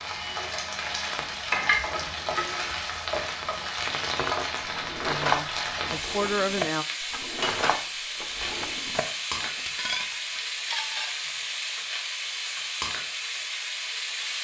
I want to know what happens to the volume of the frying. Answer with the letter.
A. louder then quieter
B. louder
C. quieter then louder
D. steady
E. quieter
D.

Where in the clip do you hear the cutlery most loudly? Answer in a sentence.
The volume of the cutlery peaks at 5 seconds.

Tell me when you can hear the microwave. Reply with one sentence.
You can't hear the microwave here.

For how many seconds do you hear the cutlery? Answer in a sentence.
You can hear the cutlery for 7 seconds altogether.